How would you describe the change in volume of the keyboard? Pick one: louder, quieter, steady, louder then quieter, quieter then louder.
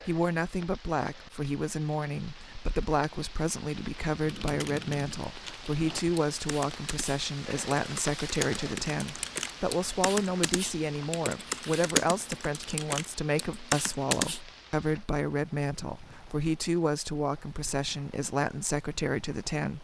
louder.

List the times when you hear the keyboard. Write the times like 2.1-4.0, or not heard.
4.2-14.4.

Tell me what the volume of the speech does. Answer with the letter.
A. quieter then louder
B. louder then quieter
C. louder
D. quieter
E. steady
E.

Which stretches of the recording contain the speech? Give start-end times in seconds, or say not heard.
0.1-19.7.